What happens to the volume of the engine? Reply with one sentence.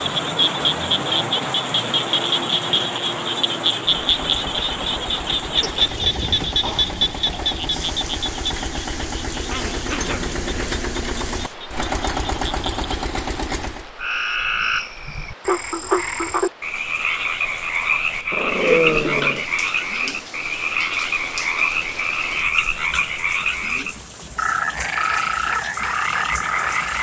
The loudness of the engine goes up.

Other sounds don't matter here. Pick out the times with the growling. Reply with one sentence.
The growling can be heard from 5.6 to 7.0 s, from 9.5 to 10.4 s and from 18.3 to 19.4 s.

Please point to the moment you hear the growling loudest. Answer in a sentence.
The loudest moment of the growling is at 19 seconds.